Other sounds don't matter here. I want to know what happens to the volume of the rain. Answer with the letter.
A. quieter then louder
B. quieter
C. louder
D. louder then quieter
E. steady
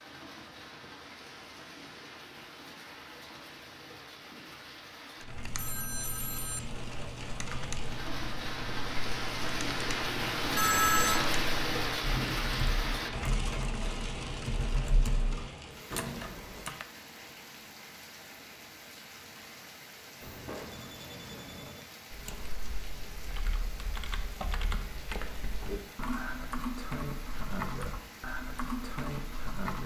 D.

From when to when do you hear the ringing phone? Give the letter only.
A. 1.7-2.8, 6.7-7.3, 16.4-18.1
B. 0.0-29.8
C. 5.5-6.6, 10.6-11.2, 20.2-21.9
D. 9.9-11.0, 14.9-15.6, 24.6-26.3
C.